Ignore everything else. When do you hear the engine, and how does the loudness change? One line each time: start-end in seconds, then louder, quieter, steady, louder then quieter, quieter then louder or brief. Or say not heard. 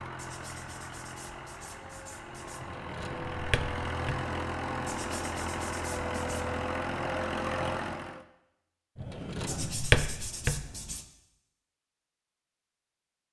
0.0-8.2 louder.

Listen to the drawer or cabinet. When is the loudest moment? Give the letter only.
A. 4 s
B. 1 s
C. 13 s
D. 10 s
D.